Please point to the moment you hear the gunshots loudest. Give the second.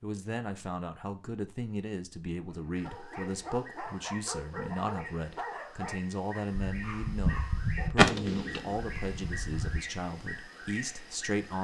8 s.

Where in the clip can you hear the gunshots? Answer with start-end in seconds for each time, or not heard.
6.5-9.8.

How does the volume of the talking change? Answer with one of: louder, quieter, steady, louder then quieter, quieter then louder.
steady.